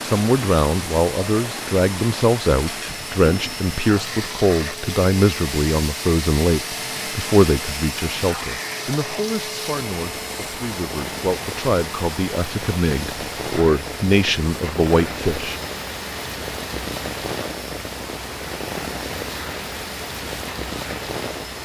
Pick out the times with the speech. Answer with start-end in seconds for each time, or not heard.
0.0-15.6.